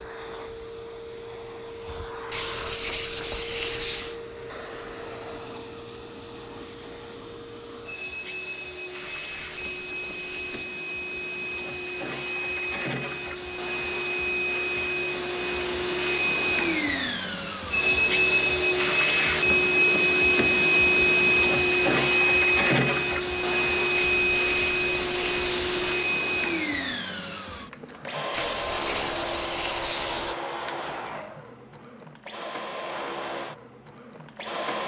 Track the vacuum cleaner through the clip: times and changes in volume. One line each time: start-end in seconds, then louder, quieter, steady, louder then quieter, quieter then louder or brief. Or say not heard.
0.0-34.8 louder then quieter.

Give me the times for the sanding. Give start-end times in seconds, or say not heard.
2.3-4.2, 9.0-10.7, 16.4-18.4, 23.9-25.9, 28.3-30.4.